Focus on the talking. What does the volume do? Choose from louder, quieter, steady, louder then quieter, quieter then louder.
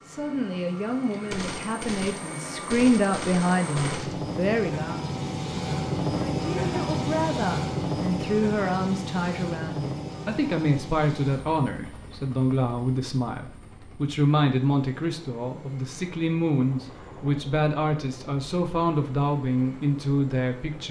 steady.